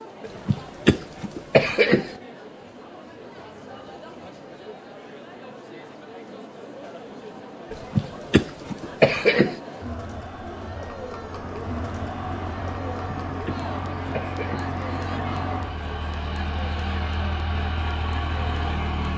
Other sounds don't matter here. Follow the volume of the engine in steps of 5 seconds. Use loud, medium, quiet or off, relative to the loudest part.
off, off, loud, loud.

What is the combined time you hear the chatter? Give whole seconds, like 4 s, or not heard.
19 s.